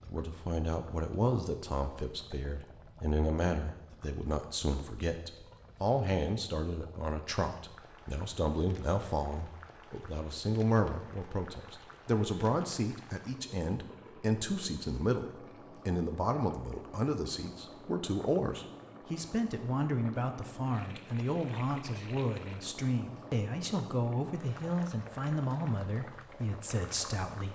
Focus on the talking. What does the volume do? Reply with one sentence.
The loudness of the talking stays about the same.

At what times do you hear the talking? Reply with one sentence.
You can hear the talking from 0.0 to 27.4 s.